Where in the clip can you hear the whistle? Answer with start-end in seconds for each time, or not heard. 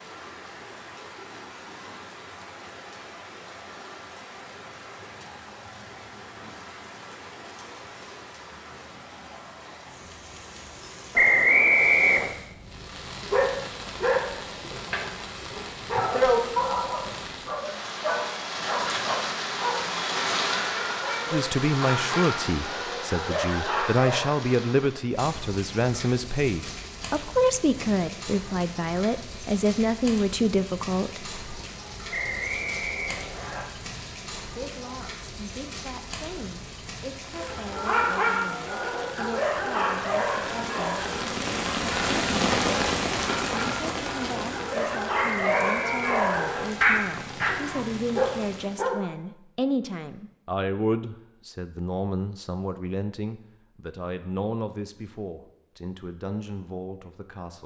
11.2-12.3, 32.1-33.6, 45.1-46.6.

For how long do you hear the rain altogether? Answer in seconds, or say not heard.
49 s.